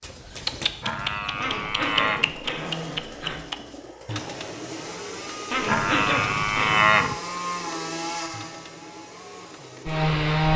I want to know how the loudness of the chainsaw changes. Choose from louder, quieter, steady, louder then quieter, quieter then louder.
louder.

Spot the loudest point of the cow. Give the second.
7 s.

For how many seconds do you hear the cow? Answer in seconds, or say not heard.
3 s.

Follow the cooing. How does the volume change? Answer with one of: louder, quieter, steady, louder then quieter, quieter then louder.
quieter.